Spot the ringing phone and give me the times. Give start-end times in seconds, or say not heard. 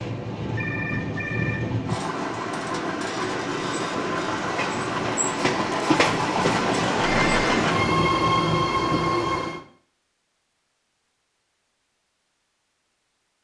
0.6-1.6, 7.0-7.6.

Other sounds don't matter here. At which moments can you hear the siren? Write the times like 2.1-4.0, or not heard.
not heard.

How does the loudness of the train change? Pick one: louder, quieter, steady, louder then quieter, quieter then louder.
louder.